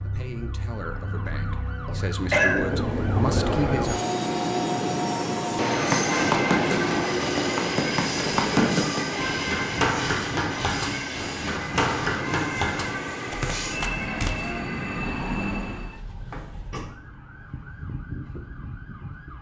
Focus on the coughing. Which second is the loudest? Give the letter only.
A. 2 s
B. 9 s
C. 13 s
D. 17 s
A.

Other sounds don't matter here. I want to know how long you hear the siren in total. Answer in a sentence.
You can hear the siren for 19 seconds altogether.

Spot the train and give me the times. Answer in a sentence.
The train can be heard from 2.3 to 16.0 s.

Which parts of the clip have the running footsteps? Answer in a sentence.
The running footsteps can be heard from 5.8 to 14.3 s.